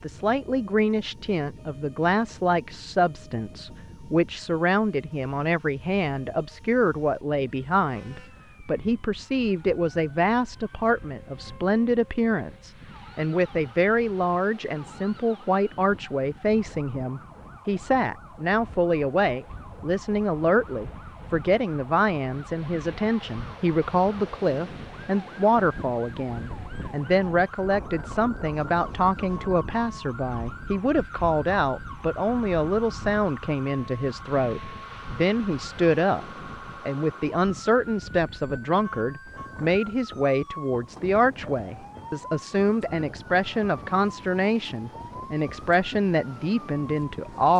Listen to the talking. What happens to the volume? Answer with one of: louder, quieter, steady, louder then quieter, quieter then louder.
steady.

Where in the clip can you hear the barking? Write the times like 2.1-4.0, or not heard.
not heard.